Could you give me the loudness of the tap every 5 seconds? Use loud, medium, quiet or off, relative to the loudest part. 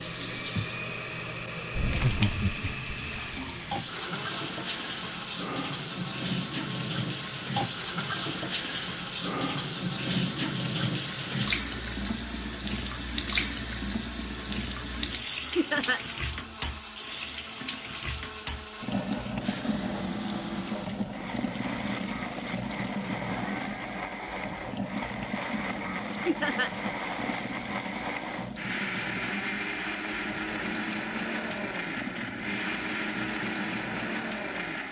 medium, loud, loud, loud, medium, medium, medium.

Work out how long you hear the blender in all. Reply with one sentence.
The blender can be heard for 35 seconds in total.